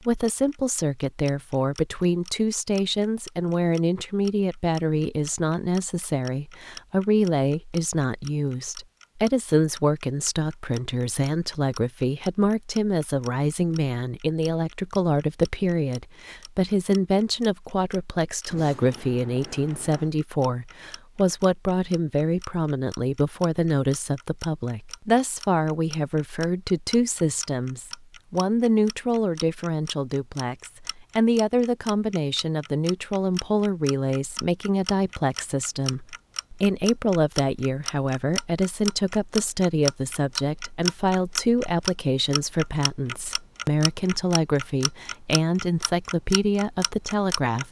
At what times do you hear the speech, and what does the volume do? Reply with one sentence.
The speech can be heard from 0.1 to 47.6 s, at a steady volume.